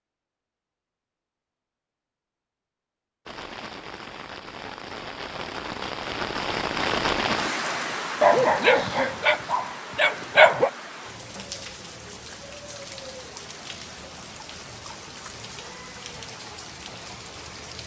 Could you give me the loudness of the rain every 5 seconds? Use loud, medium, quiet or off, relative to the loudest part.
medium, loud, medium, medium.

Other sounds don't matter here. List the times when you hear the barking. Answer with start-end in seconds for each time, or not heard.
8.2-10.7.